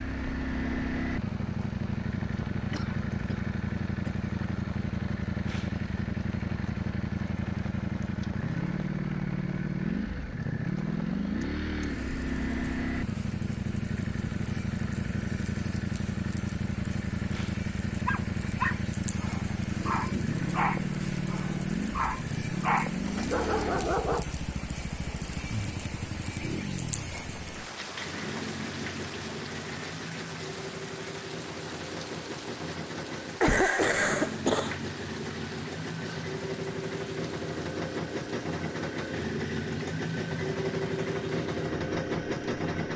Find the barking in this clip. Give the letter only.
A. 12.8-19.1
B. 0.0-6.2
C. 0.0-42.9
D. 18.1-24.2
D.